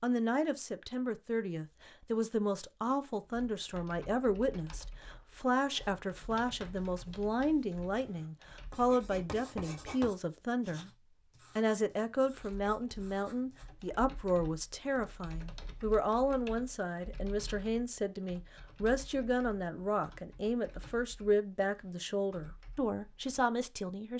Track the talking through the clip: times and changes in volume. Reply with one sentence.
You can hear the talking from 0.0 to 10.9 s, at a steady volume; and from 11.6 to 24.1 s, at a steady volume.